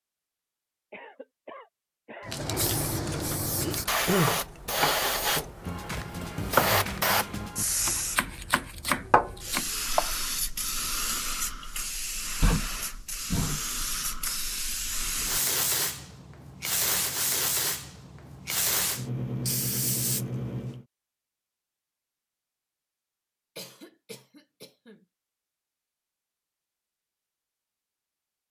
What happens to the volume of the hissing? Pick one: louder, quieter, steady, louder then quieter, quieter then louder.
steady.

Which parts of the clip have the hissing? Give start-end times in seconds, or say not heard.
2.2-20.9.